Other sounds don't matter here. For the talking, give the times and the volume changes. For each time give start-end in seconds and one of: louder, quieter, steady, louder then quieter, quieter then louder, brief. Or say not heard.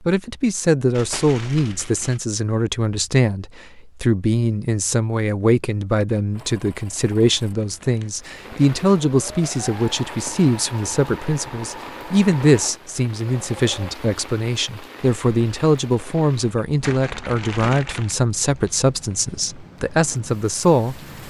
0.1-21.0 steady.